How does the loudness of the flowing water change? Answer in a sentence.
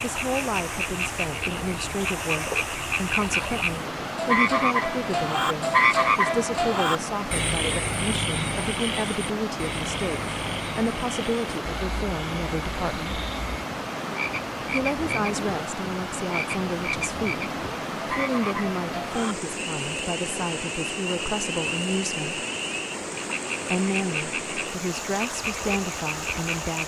The volume of the flowing water stays about the same.